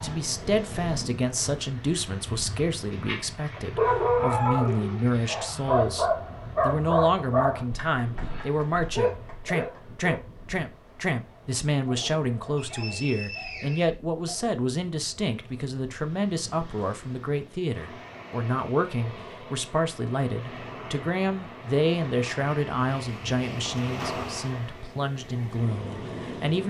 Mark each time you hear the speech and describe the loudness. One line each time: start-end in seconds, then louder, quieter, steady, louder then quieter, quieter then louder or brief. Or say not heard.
0.0-26.6 steady.